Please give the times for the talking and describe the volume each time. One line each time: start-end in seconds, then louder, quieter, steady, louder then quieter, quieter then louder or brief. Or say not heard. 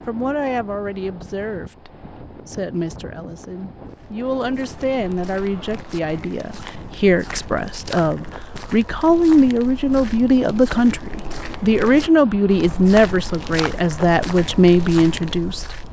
0.1-15.7 louder.